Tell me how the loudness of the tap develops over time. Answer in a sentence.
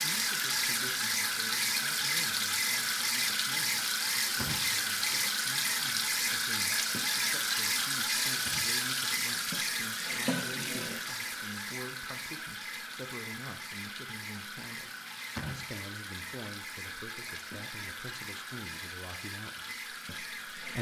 The volume of the tap goes down.